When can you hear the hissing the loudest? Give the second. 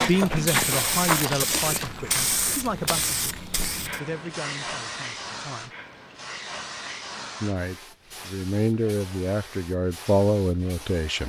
1 s.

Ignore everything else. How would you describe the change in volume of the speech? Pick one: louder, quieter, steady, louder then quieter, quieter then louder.
quieter then louder.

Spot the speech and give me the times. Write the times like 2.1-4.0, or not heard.
0.1-5.8, 7.4-11.2.